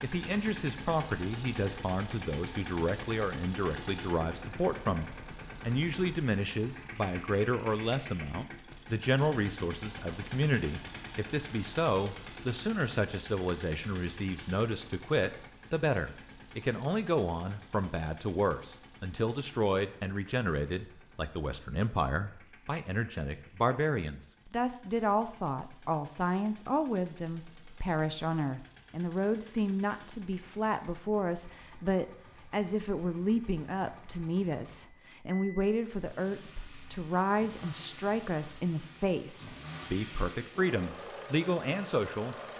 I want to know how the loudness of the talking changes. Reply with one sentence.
The loudness of the talking stays about the same.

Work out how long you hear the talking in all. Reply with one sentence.
You can hear the talking for 42 seconds altogether.